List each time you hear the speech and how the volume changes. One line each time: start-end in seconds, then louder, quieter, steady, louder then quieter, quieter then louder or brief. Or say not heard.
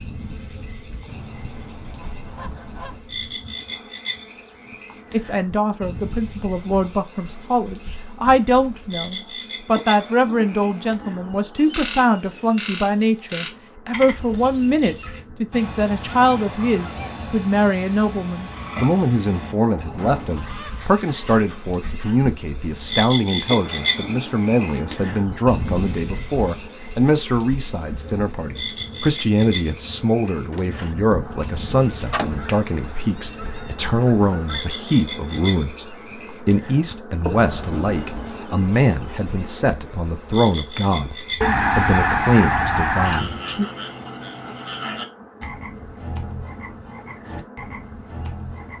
5.1-43.6 steady.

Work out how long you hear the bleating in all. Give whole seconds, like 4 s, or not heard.
not heard.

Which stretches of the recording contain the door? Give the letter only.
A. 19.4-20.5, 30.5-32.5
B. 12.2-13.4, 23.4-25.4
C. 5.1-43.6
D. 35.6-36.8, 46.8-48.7
A.